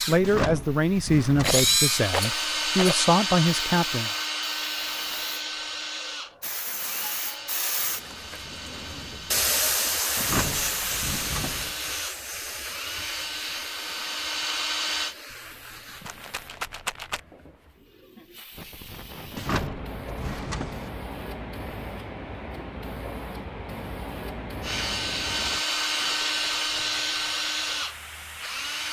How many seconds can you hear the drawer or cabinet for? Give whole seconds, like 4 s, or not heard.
5 s.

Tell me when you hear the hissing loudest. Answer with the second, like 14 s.
10 s.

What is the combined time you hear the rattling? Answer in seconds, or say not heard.
5 s.